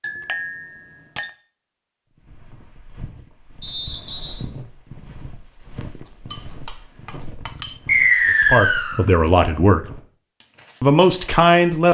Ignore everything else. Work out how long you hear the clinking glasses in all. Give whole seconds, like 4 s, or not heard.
3 s.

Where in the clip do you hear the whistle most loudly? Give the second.
8 s.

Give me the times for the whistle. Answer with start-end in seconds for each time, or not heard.
3.6-4.3, 7.8-9.0.